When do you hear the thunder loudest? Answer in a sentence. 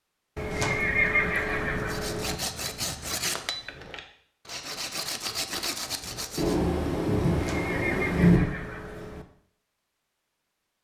The loudest moment of the thunder is at 8 seconds.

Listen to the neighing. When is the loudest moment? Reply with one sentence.
The volume of the neighing peaks at 1 second.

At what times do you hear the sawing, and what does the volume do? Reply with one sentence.
You can hear the sawing from 1.8 to 6.6 s, getting quieter then louder.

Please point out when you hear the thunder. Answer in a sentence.
You can hear the thunder from 6.3 to 8.4 s.